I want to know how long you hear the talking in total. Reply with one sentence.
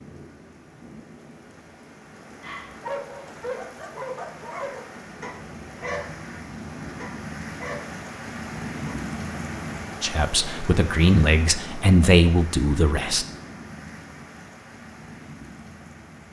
You can hear the talking for 3 seconds altogether.